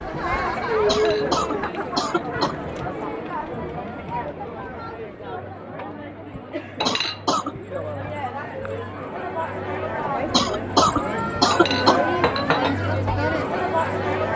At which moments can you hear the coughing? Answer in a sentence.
You can hear the coughing from 0.8 to 2.5 s, from 6.8 to 7.5 s and from 10.3 to 12.0 s.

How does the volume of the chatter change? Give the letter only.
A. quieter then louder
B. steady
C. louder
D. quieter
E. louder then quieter
A.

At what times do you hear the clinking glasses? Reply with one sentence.
You can hear the clinking glasses from 0.9 to 1.8 s, from 6.8 to 7.2 s and from 11.5 to 12.8 s.